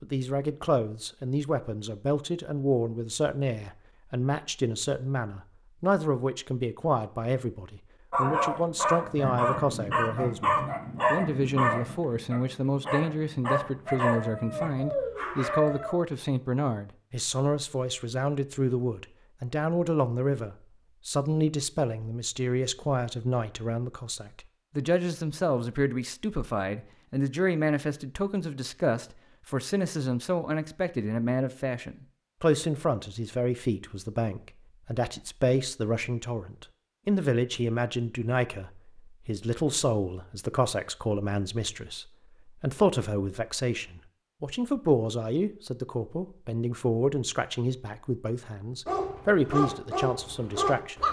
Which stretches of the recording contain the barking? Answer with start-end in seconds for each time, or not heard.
8.1-15.9, 48.9-51.0.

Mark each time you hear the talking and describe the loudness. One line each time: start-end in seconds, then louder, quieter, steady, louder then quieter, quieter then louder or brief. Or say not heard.
0.0-51.0 steady.